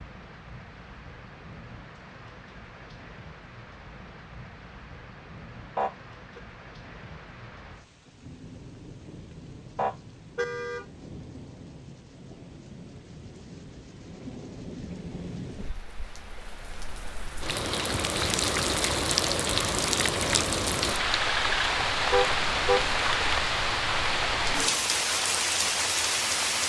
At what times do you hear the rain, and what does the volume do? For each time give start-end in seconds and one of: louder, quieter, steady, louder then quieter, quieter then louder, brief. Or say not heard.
0.0-26.6 louder.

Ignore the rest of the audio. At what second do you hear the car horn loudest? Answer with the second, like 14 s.
22 s.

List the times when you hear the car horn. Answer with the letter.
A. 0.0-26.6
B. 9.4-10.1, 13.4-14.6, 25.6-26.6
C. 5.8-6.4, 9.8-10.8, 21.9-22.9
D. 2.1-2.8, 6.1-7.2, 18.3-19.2
C.